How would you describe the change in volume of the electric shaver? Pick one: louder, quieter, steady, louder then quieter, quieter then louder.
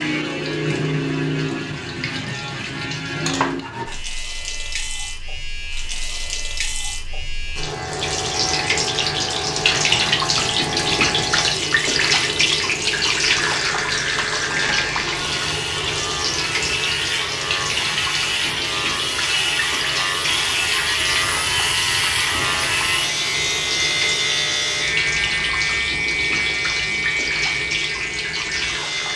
louder.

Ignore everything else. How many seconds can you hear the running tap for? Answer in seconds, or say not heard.
29 s.